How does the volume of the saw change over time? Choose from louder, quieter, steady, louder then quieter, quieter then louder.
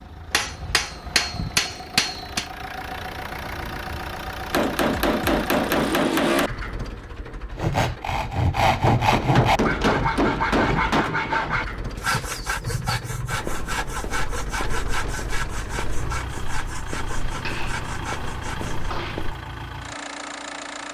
quieter.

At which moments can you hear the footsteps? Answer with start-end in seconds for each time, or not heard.
13.3-19.4.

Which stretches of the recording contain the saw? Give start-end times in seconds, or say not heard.
7.5-18.9.